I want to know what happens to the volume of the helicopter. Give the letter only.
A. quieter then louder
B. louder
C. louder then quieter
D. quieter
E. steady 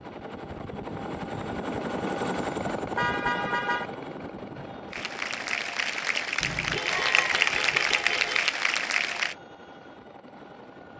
D.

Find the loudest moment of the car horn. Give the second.
3 s.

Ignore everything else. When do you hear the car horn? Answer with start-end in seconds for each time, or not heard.
3.0-3.9, 6.4-8.4.